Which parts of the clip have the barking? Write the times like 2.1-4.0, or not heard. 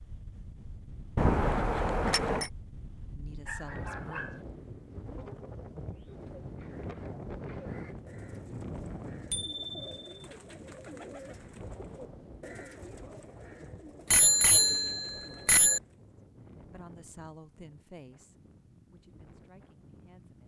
3.5-4.5.